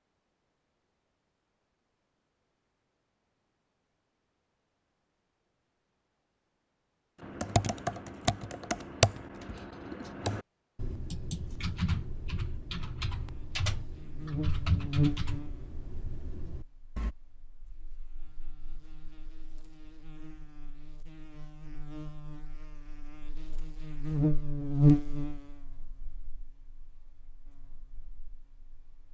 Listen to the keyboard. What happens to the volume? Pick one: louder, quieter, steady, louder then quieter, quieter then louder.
quieter.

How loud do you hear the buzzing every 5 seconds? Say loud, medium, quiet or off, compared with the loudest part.
off, off, medium, medium, loud, quiet.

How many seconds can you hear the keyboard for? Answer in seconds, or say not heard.
10 s.